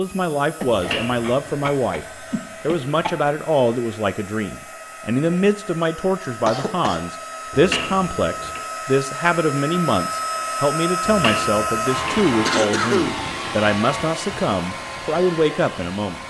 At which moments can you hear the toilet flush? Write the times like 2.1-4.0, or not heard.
0.7-1.3, 7.5-8.7, 11.1-12.2.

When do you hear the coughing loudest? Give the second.
13 s.